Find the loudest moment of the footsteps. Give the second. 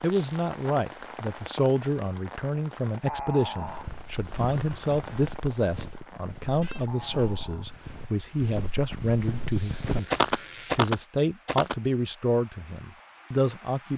10 s.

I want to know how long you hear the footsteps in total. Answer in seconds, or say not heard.
8 s.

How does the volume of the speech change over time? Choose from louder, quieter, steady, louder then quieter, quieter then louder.
steady.